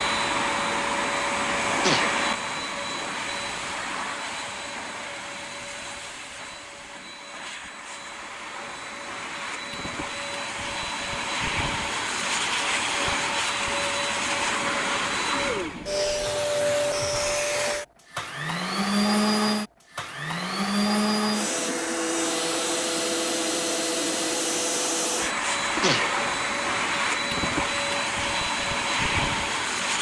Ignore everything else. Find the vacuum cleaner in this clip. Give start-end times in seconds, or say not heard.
0.0-29.9.